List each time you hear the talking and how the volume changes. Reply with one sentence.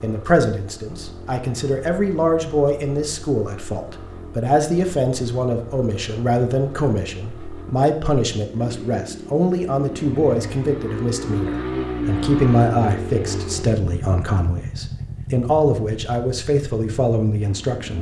The talking can be heard from 0.0 to 17.9 s, at a steady volume.